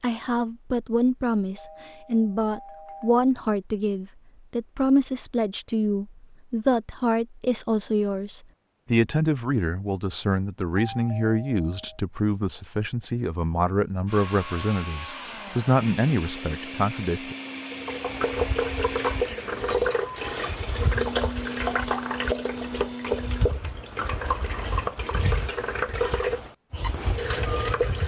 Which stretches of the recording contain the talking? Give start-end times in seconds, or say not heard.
0.0-17.4.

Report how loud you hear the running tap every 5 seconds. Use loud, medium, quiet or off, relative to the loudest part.
off, off, off, loud, loud, loud.